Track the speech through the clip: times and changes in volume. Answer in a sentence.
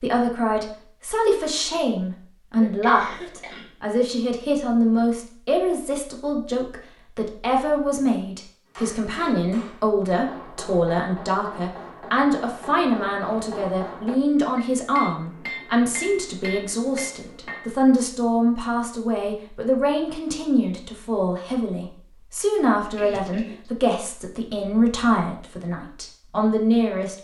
You can hear the speech from 0.0 to 27.1 s, at a steady volume.